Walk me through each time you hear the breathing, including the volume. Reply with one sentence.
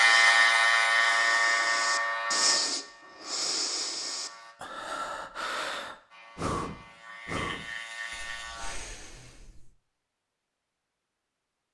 The breathing can be heard from 0.0 to 9.8 s, getting louder then quieter.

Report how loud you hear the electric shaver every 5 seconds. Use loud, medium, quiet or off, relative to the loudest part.
loud, quiet, off.